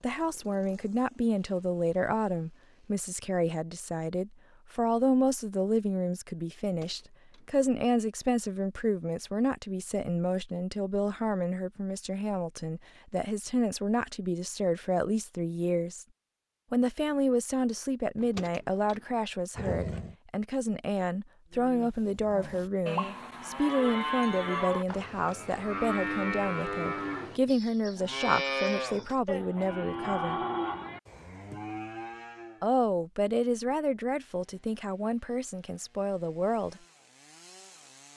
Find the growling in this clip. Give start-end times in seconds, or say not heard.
19.6-20.1.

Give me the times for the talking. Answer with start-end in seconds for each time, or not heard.
0.0-16.1, 16.7-30.4, 32.6-36.8.